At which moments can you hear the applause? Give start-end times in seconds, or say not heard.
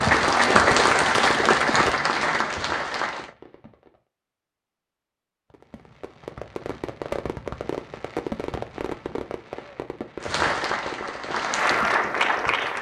0.0-3.3, 10.2-12.7.